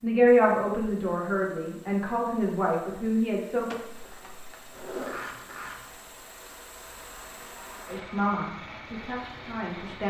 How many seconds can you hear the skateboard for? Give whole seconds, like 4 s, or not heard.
2 s.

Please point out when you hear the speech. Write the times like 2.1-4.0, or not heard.
0.0-3.7, 7.8-10.0.